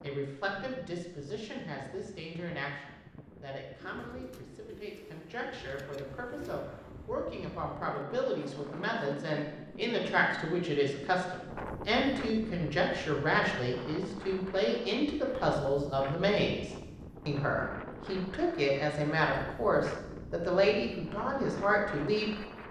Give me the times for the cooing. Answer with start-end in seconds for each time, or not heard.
3.8-6.7.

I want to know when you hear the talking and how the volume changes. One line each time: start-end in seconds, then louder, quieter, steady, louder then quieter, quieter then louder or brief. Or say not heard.
0.0-22.6 louder.